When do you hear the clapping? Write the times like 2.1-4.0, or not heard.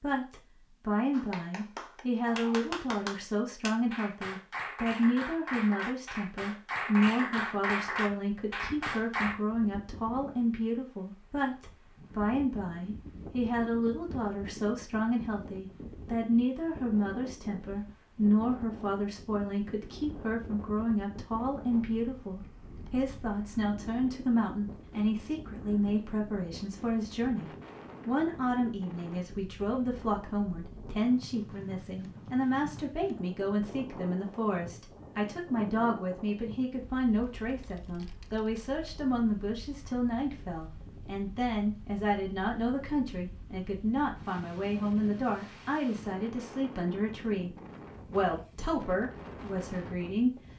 1.1-9.3.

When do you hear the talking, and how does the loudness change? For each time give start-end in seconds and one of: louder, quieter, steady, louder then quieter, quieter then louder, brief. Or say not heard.
0.0-47.5 steady
48.1-50.4 brief.